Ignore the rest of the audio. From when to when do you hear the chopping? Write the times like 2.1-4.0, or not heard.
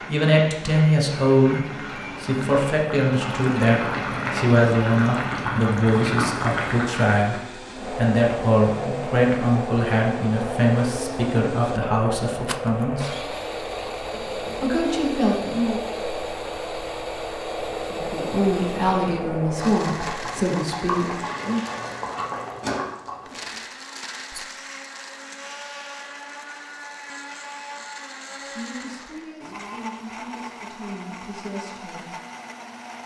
not heard.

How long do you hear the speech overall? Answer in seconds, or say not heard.
22 s.